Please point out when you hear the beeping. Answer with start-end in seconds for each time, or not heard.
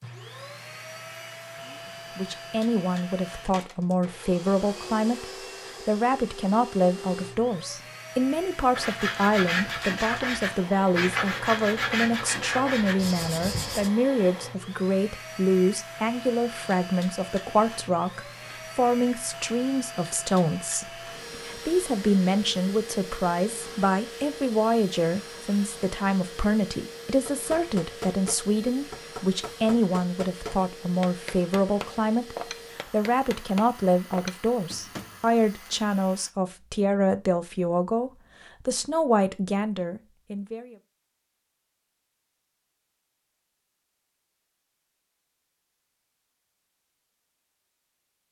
not heard.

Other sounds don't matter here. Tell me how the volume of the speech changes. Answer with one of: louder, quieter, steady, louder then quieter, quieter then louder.
steady.